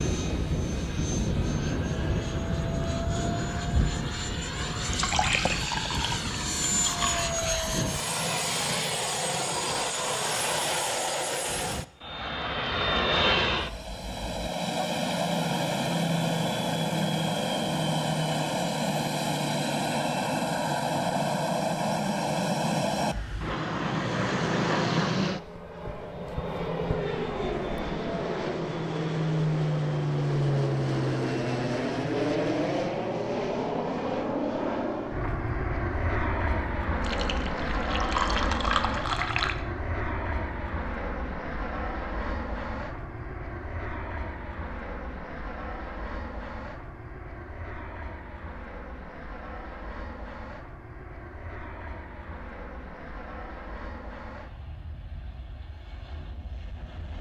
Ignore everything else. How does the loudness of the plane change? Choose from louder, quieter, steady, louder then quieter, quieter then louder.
quieter.